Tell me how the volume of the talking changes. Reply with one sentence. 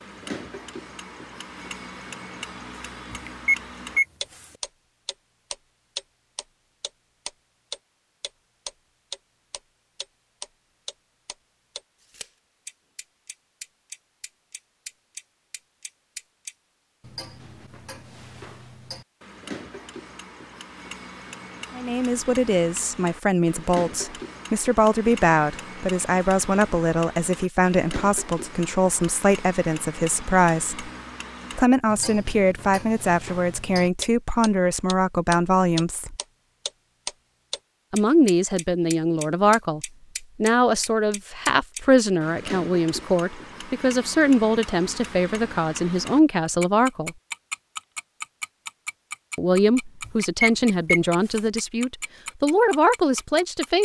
The loudness of the talking stays about the same.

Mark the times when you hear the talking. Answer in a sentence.
The talking can be heard from 21.8 to 30.9 s, from 31.6 to 36.1 s, from 37.9 to 47.1 s and from 49.4 to 53.8 s.